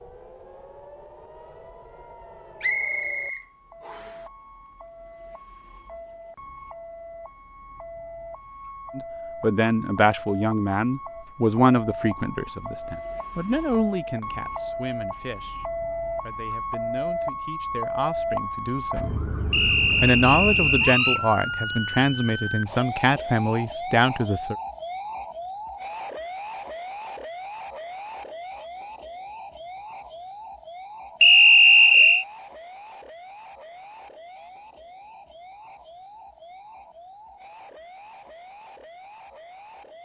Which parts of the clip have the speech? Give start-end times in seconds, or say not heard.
8.9-19.2, 20.0-24.6.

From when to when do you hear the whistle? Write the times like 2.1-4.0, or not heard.
2.6-4.2, 19.5-21.2, 31.2-32.2.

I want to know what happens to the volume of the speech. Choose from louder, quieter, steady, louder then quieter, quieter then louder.
quieter then louder.